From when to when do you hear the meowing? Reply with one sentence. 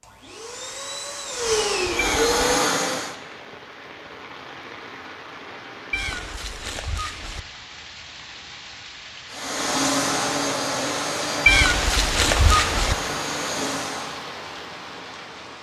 The meowing can be heard from 1.9 to 2.4 s, from 5.9 to 7.4 s and from 11.4 to 12.9 s.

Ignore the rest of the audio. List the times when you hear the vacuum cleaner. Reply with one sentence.
The vacuum cleaner can be heard from 0.0 to 3.1 s and from 9.3 to 14.2 s.